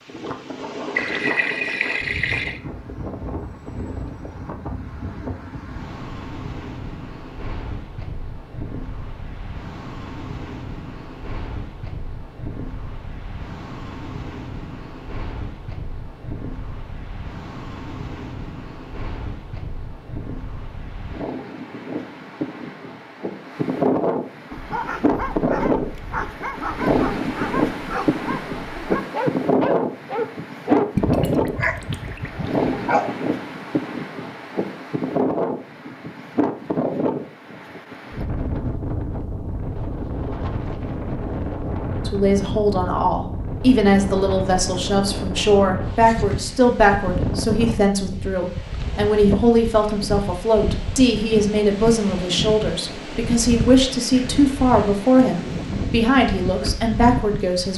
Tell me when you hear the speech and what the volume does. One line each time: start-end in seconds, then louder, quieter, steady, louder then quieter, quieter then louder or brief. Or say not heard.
42.0-57.7 steady.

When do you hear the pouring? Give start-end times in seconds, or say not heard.
0.9-2.6, 30.9-32.6.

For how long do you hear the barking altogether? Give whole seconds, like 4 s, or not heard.
9 s.